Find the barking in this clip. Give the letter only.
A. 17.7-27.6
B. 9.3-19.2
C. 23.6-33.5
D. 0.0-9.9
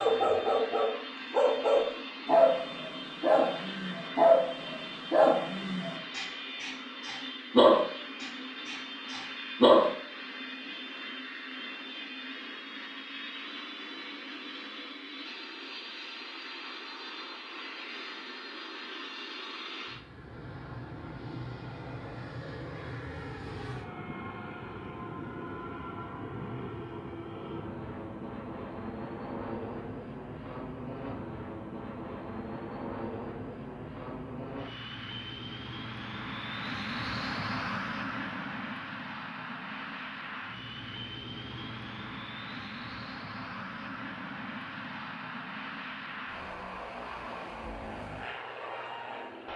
D.